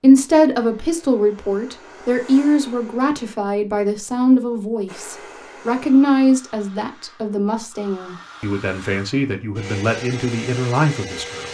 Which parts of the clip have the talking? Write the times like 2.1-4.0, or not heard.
0.0-11.4.